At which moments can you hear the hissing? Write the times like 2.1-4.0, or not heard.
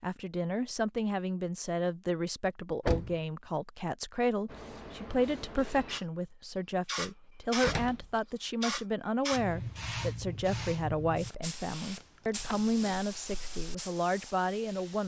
4.5-15.0.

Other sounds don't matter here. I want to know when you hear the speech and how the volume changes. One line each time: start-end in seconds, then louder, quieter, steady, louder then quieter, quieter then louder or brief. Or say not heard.
0.0-15.0 steady.